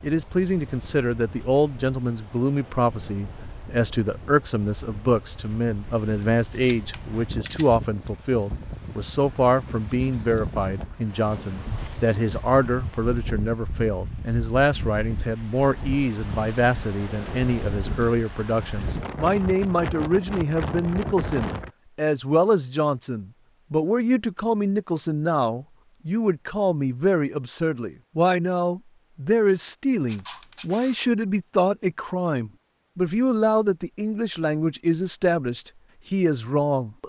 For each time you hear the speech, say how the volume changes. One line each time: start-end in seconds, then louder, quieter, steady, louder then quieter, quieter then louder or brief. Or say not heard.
0.0-37.0 steady.